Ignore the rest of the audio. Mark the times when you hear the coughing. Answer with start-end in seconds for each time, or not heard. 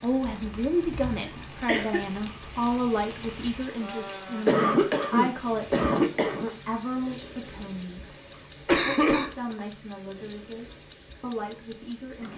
0.2-2.0, 4.5-6.5, 8.7-9.3.